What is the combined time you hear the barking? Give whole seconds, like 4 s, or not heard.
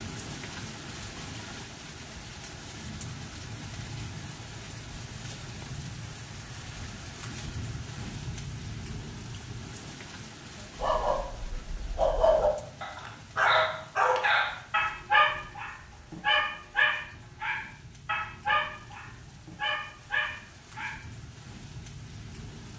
10 s.